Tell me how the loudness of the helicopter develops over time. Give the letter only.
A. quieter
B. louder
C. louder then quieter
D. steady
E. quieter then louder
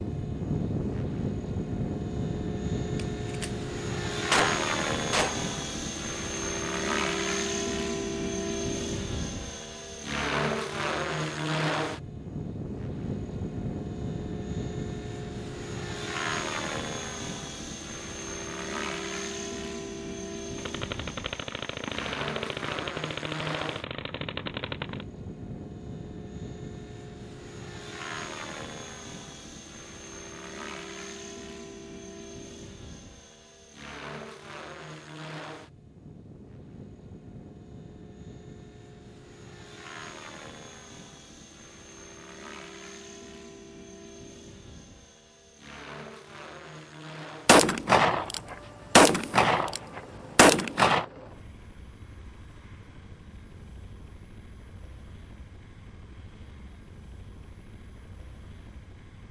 A.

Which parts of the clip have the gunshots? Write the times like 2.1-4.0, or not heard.
3.0-3.5, 4.3-5.5, 20.6-25.1, 47.5-51.0.